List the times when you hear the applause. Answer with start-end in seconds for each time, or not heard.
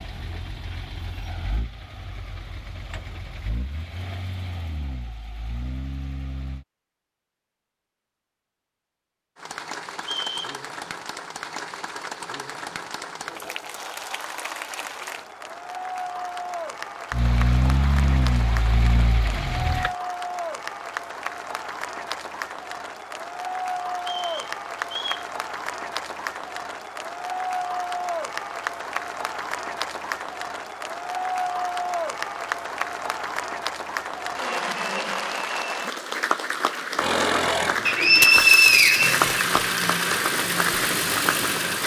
9.3-41.8.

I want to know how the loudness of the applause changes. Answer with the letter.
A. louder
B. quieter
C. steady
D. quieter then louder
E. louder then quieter
A.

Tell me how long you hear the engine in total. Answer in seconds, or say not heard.
14 s.